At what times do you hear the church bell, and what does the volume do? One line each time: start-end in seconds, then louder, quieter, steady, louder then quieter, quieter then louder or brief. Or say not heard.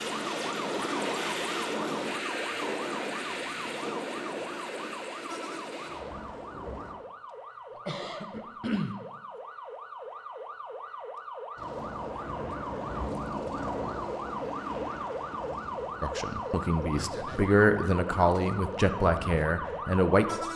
not heard.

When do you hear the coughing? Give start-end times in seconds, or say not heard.
7.8-8.9.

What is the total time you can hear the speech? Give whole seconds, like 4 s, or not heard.
4 s.